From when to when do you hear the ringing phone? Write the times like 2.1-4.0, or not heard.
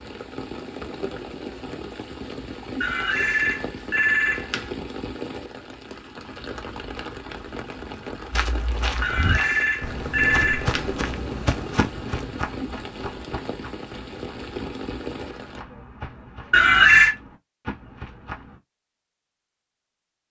2.8-4.7, 9.0-10.8, 16.5-17.1.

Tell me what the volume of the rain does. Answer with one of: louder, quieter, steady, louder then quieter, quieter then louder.
steady.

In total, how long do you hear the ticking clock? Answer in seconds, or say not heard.
not heard.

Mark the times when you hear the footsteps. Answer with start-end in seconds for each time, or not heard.
8.3-18.6.